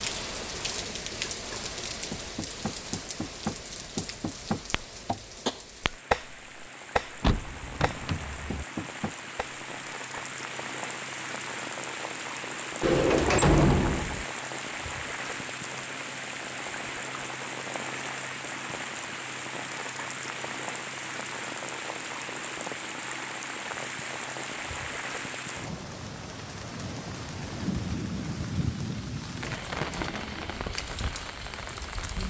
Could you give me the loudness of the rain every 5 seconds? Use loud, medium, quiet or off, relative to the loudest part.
loud, medium, loud, loud, loud, loud, loud.